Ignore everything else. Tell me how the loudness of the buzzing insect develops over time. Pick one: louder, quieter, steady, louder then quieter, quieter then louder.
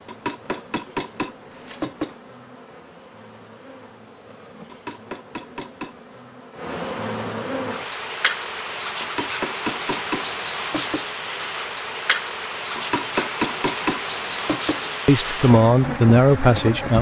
louder.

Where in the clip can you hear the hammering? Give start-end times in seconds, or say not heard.
0.1-2.2, 4.7-6.1, 9.0-11.1, 12.8-14.9.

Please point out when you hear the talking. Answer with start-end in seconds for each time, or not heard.
15.1-16.9.